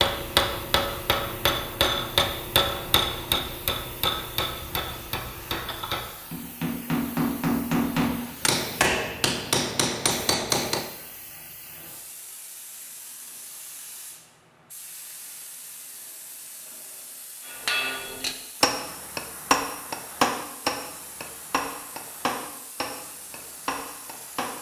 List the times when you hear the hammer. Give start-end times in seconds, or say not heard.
0.0-10.9, 17.4-24.5.